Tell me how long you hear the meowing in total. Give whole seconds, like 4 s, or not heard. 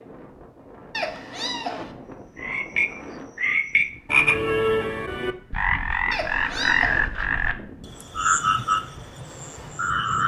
2 s.